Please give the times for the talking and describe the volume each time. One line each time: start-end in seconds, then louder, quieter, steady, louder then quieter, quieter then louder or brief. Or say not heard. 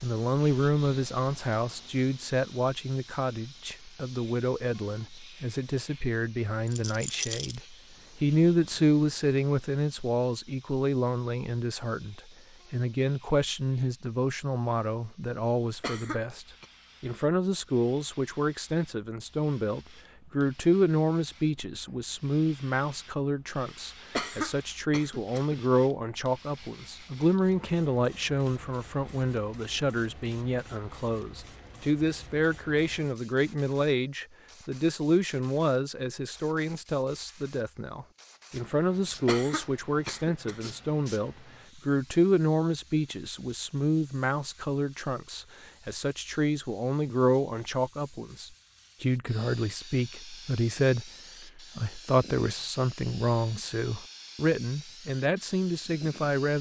0.0-56.5 steady.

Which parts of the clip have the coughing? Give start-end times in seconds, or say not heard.
15.8-16.6, 24.1-25.6, 39.2-40.7.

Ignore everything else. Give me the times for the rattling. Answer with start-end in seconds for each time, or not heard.
6.7-7.6.